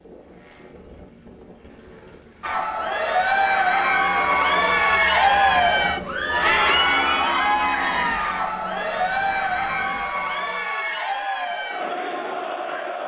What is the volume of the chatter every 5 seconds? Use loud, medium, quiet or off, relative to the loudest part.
loud, loud, medium.